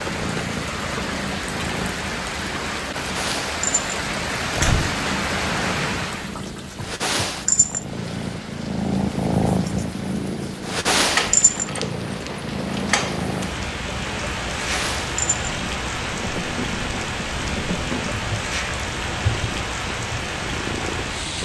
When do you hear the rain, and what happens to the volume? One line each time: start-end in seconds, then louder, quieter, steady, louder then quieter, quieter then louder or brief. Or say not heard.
0.0-21.3 quieter then louder.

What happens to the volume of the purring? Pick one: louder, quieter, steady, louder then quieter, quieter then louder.
louder then quieter.